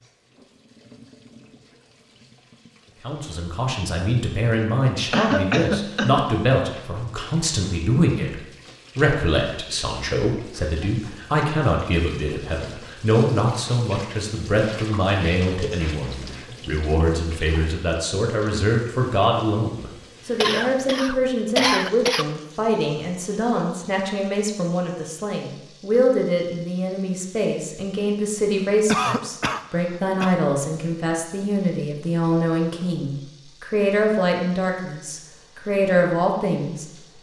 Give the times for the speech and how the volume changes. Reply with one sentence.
You can hear the speech from 3.0 to 37.1 s, at a steady volume.